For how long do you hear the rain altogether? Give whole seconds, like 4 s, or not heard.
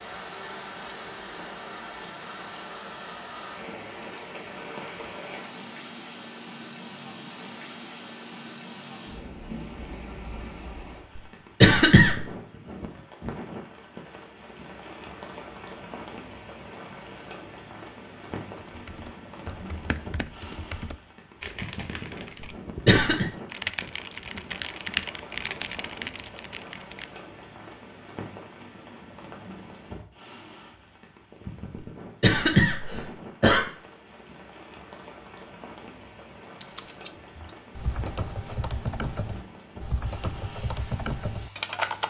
42 s.